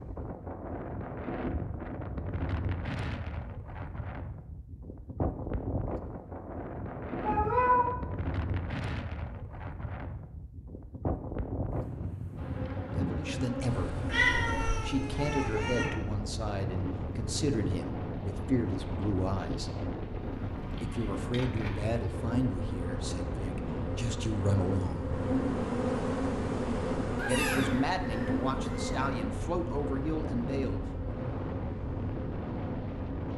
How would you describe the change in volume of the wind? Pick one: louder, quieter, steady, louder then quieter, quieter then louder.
steady.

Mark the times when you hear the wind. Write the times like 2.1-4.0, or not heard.
0.0-33.3.